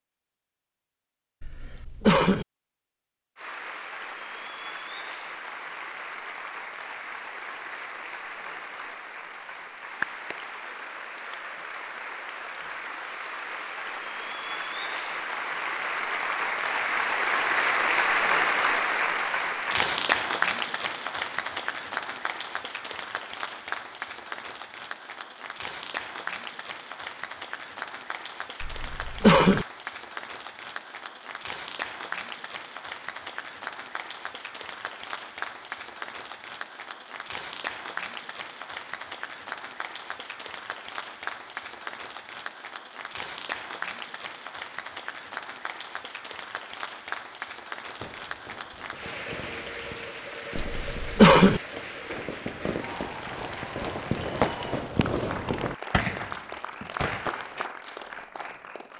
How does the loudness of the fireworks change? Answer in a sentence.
The volume of the fireworks goes up.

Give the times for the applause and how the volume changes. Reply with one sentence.
You can hear the applause from 3.4 to 58.9 s, getting louder then quieter.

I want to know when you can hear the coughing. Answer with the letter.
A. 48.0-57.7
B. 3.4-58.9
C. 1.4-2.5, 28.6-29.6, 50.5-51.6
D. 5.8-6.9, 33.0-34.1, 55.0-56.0
C.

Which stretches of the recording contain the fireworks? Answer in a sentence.
You can hear the fireworks from 48.0 to 57.7 s.